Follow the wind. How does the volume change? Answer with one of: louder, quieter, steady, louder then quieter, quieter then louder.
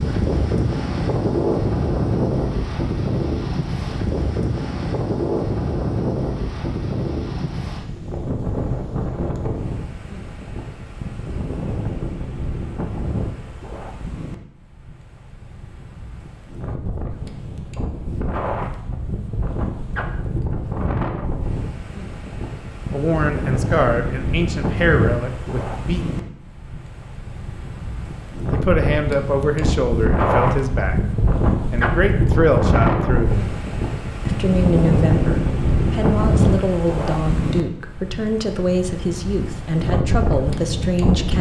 quieter then louder.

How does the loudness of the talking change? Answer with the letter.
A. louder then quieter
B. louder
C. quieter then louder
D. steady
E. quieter
D.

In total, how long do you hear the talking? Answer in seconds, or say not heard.
15 s.